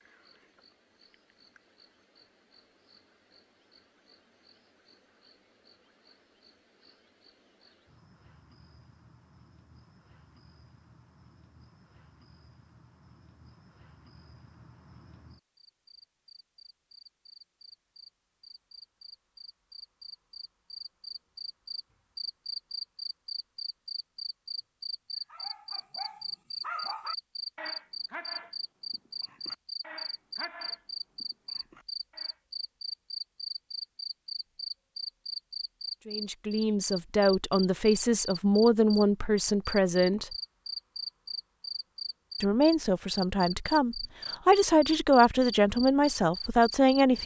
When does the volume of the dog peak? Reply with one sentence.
The volume of the dog peaks at 27 seconds.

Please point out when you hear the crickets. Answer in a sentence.
You can hear the crickets from 0.0 to 47.2 s.